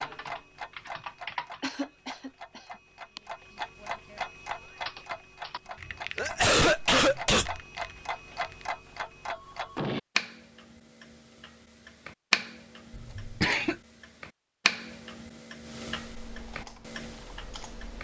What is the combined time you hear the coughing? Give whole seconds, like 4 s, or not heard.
4 s.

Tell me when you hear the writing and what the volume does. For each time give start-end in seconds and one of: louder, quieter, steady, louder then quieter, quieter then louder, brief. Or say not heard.
not heard.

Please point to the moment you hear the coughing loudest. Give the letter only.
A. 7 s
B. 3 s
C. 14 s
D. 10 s
A.